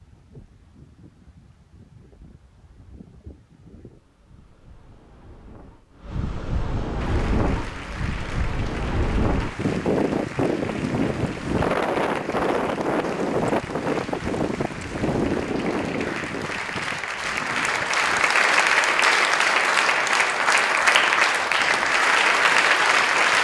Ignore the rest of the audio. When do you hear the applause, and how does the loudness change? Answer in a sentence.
The applause can be heard from 7.0 to 23.3 s, getting louder.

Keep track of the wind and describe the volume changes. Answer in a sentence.
The loudness of the wind goes up, then down.